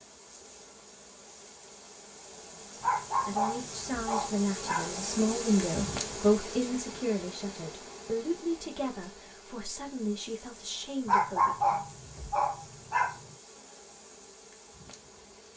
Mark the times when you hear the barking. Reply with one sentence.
You can hear the barking from 2.8 to 5.0 s and from 11.1 to 13.3 s.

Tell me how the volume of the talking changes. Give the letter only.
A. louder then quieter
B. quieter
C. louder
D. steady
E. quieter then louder
A.